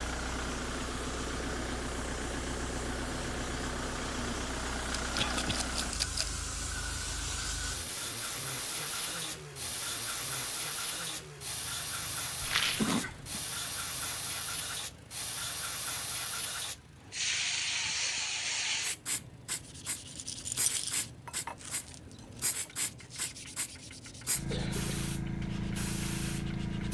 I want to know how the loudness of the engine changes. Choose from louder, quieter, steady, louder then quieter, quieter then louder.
quieter.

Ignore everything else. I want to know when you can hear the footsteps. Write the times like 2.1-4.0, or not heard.
not heard.